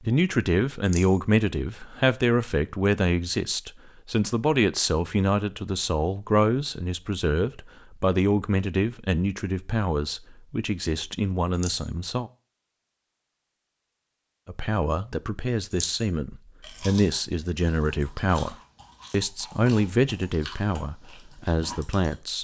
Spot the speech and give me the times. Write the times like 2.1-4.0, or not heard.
0.0-12.3, 14.4-22.3.